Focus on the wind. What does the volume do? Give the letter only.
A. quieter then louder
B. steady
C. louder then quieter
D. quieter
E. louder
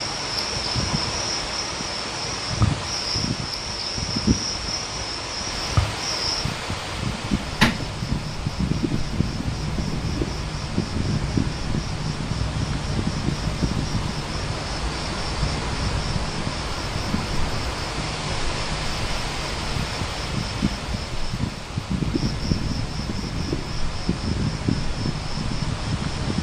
B.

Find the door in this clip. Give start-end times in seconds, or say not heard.
7.1-7.8.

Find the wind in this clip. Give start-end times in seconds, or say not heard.
0.0-26.3.